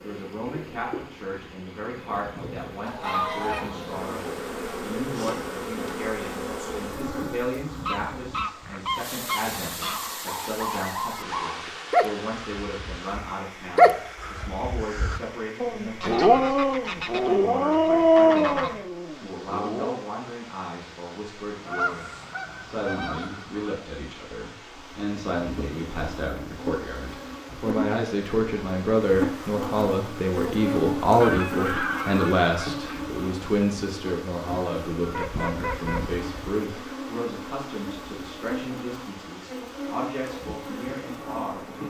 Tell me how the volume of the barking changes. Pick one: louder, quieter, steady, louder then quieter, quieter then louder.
louder.